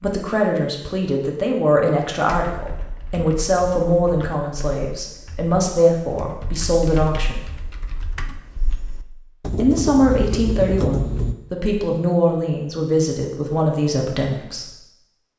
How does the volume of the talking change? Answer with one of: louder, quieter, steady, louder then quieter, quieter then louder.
steady.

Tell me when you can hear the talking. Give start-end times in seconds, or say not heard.
0.0-7.4, 9.6-14.7.